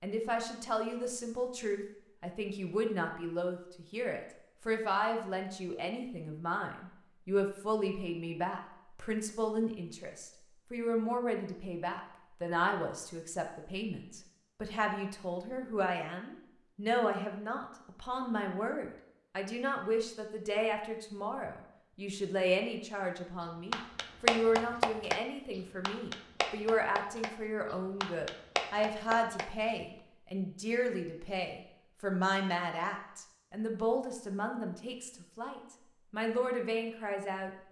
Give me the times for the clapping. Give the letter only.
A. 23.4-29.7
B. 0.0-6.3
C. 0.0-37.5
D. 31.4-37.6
A.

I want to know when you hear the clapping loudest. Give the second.
24 s.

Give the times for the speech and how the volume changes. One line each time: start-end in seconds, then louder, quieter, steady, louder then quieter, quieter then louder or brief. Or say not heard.
0.0-37.5 steady.